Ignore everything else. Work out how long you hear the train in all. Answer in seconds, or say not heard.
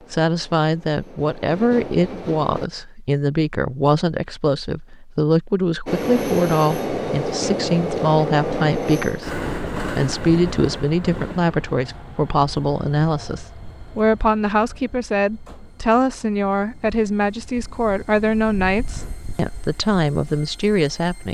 18 s.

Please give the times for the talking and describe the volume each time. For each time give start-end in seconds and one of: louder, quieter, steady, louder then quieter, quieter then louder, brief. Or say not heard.
0.1-21.2 steady.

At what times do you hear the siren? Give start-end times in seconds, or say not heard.
not heard.